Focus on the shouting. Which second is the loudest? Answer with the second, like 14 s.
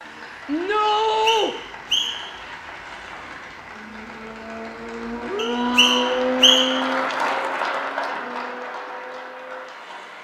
1 s.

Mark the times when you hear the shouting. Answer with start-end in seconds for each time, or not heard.
0.5-1.6, 5.2-6.2.